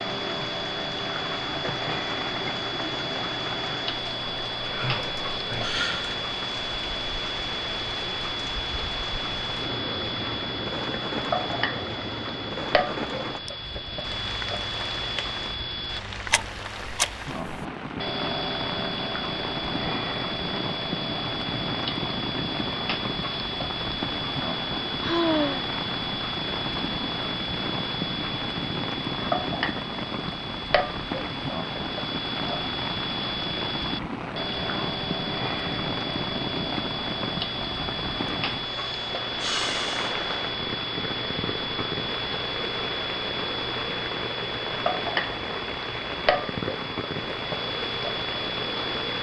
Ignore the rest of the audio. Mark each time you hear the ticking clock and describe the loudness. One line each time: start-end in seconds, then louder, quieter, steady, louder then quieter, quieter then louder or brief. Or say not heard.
0.0-49.1 steady.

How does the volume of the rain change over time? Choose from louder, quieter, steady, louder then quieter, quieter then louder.
steady.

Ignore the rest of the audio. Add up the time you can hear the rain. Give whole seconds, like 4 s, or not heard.
49 s.